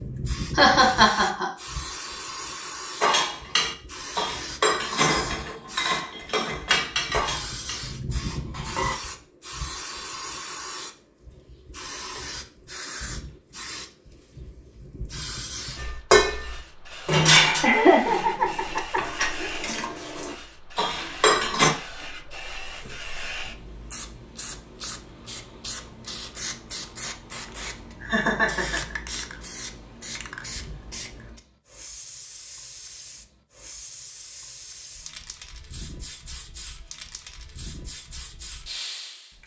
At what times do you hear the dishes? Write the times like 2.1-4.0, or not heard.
3.0-8.9, 15.8-21.8.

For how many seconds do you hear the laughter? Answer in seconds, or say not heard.
4 s.